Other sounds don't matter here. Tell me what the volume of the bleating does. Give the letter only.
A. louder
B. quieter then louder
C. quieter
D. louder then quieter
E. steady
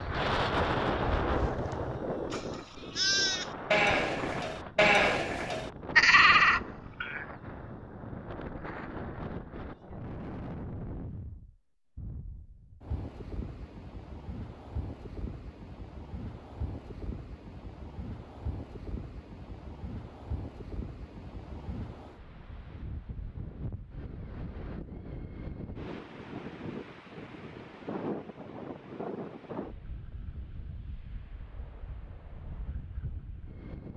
A.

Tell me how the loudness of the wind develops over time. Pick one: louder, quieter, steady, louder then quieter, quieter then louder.
quieter.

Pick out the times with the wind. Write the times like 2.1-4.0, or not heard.
0.0-33.9.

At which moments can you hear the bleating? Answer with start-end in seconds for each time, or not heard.
0.0-7.2.